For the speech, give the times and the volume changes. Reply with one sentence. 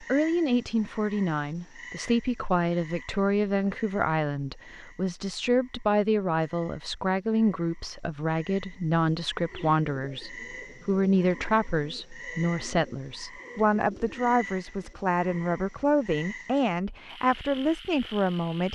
The speech can be heard from 0.0 to 18.7 s, at a steady volume.